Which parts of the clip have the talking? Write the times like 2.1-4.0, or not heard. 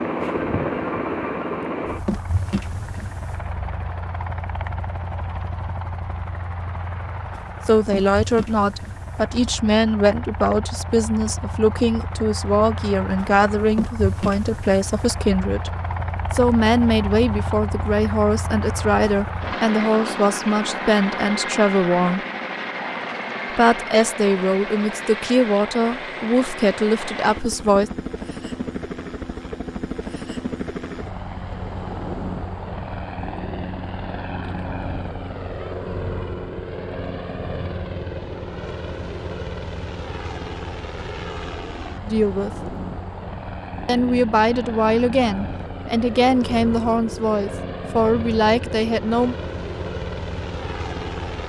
7.7-15.7, 16.3-22.2, 23.5-27.9, 42.0-42.7, 43.9-49.4.